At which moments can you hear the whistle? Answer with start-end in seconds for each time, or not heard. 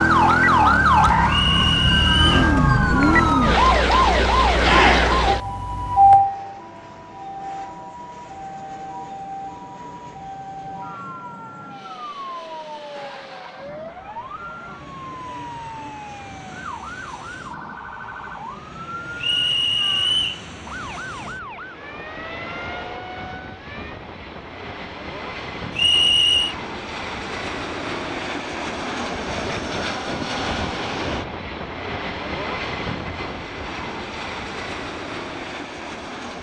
1.2-2.5, 19.2-20.4, 25.8-26.6.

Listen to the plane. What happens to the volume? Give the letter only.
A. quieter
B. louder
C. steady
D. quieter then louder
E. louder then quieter
B.